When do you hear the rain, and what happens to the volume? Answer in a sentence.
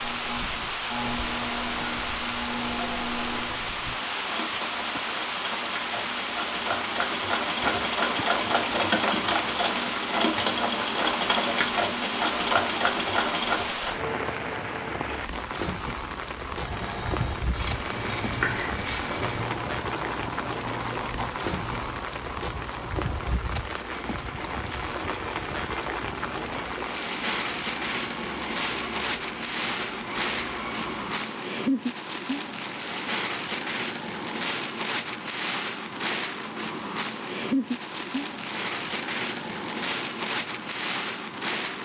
The rain can be heard from 0.0 to 41.7 s, at a steady volume.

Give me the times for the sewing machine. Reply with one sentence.
The sewing machine can be heard from 0.0 to 13.9 s and from 16.4 to 31.2 s.